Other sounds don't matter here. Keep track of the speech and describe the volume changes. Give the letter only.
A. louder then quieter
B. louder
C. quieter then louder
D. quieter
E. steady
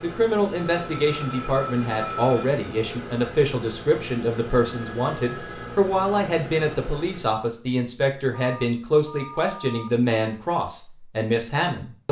E.